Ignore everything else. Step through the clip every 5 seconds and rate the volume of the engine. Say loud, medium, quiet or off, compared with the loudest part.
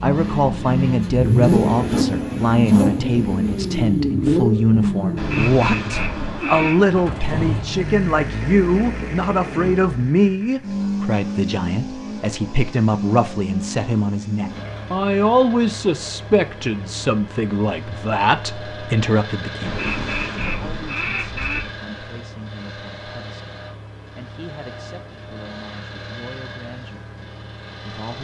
loud, medium, medium, quiet, quiet, quiet.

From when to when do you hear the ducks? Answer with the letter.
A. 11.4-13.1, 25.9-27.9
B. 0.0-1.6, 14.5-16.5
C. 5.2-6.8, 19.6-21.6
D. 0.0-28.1
C.